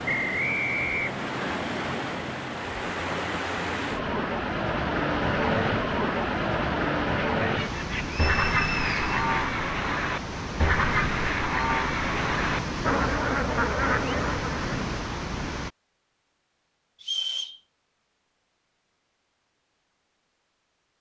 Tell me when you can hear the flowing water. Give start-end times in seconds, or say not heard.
0.0-15.7.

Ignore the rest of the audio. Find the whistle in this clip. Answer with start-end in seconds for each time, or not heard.
0.1-1.6, 8.2-9.2, 17.0-17.6.